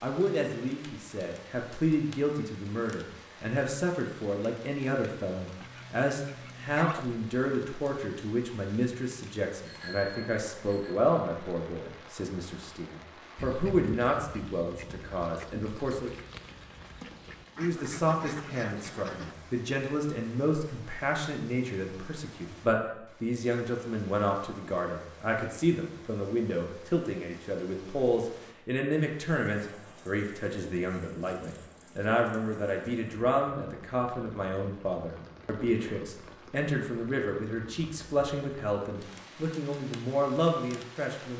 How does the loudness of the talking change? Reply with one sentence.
The volume of the talking stays about the same.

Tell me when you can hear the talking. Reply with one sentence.
You can hear the talking from 0.0 to 16.1 s and from 17.6 to 41.3 s.